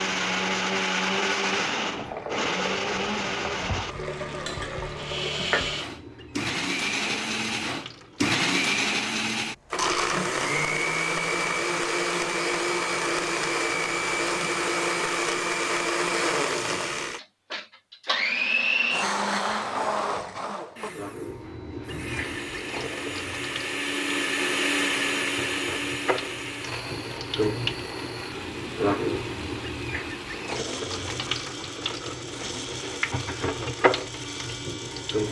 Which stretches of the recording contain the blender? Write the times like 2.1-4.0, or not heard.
0.0-35.2.